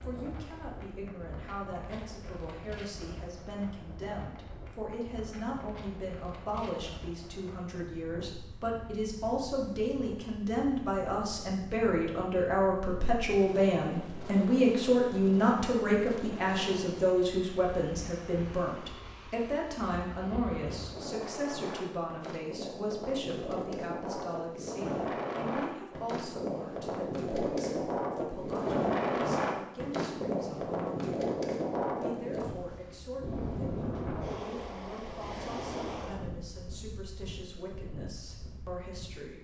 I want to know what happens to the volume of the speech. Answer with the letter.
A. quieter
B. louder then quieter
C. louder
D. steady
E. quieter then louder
B.